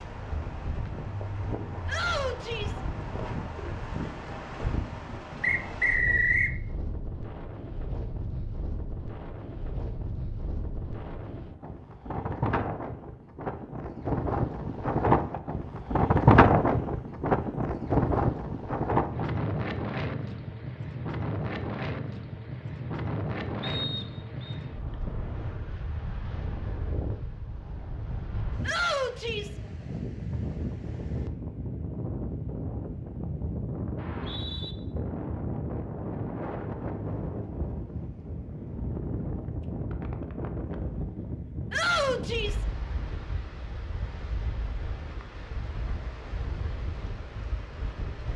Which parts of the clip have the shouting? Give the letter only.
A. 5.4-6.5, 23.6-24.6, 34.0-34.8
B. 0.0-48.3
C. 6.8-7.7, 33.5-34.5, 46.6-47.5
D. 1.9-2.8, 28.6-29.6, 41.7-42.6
D.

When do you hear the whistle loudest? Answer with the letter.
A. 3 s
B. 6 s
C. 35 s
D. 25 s
B.